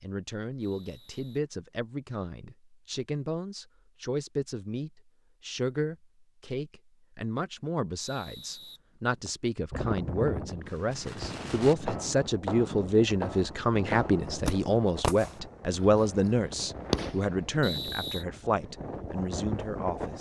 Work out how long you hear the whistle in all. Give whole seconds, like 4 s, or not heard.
3 s.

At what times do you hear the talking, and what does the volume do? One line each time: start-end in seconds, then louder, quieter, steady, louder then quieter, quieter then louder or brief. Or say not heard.
0.0-20.1 louder.